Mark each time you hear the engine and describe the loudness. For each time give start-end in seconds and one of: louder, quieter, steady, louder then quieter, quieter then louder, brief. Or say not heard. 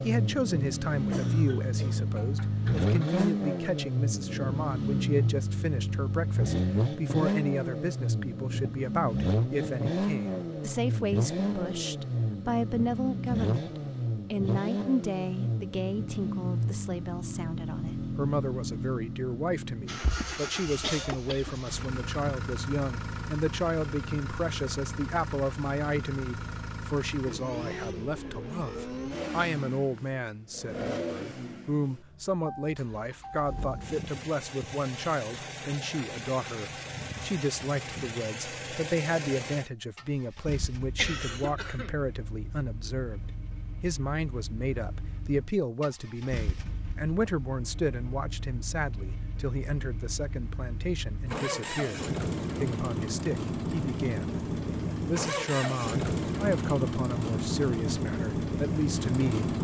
0.0-59.6 quieter then louder.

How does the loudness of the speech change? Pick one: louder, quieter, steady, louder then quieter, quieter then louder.
steady.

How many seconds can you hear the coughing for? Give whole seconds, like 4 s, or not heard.
5 s.